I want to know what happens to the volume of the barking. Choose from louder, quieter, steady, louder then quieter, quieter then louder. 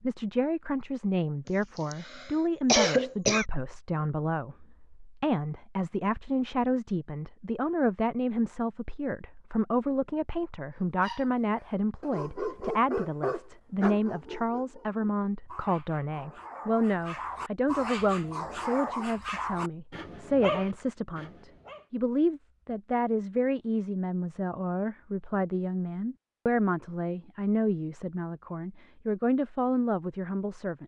quieter then louder.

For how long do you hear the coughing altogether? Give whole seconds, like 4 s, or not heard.
2 s.